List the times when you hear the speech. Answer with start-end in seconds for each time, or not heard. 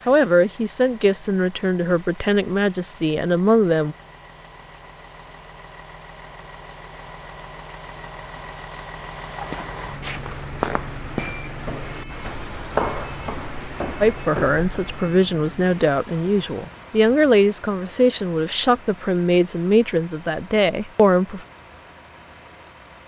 0.1-4.0, 14.0-21.4.